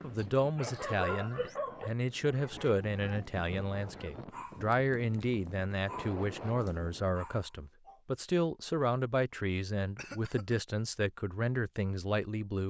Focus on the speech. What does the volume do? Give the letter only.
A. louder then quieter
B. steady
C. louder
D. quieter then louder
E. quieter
B.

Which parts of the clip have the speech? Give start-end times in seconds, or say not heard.
0.0-12.6.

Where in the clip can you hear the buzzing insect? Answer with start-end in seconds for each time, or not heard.
not heard.